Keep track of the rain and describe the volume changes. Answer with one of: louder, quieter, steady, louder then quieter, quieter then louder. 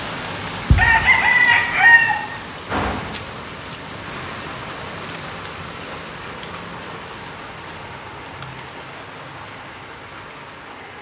quieter.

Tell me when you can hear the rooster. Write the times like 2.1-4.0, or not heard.
0.7-2.2.